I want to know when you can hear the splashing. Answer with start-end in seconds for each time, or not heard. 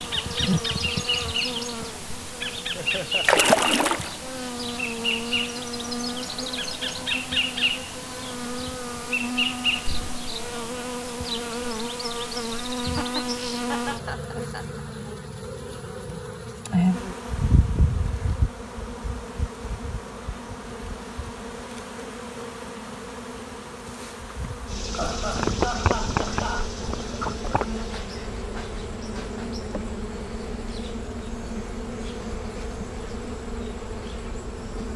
3.2-4.2.